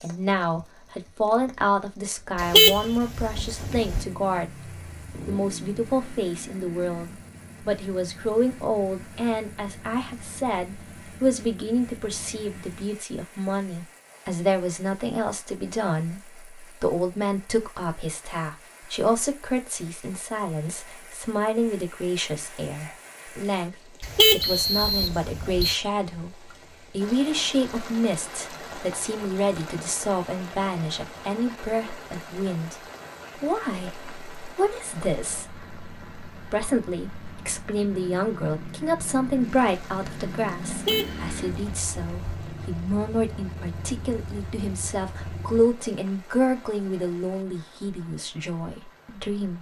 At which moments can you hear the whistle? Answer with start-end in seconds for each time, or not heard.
24.4-25.8.